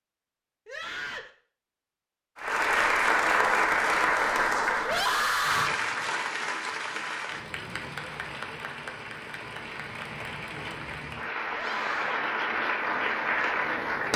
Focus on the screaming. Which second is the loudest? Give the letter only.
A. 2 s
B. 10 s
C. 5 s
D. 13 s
C.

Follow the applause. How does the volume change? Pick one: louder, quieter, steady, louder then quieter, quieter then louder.
quieter then louder.